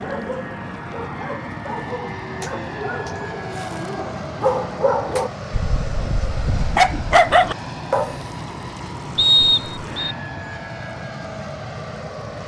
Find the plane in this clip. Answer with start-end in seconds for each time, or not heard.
0.0-12.4.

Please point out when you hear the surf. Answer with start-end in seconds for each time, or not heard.
not heard.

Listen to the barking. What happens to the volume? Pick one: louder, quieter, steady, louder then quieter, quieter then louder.
louder.